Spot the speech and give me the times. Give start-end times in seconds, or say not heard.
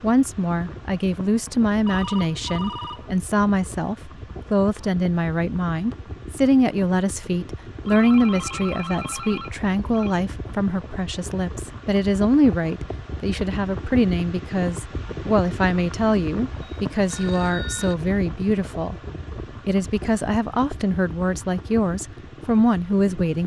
0.0-18.9, 19.6-23.4.